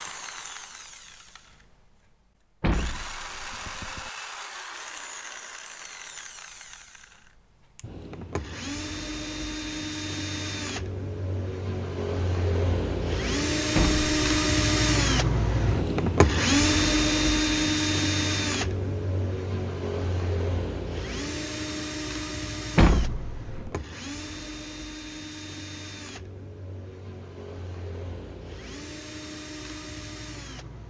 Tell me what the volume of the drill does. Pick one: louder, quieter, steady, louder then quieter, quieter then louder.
louder then quieter.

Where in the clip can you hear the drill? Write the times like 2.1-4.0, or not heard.
0.0-30.8.